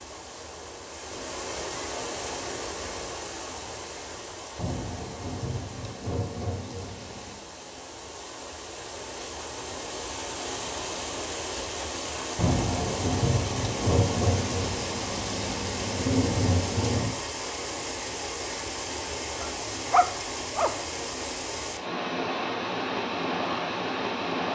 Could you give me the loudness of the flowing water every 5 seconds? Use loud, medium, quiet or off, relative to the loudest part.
medium, medium, loud, loud, loud.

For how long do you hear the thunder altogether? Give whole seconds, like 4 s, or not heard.
8 s.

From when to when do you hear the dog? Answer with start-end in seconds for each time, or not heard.
19.4-20.8.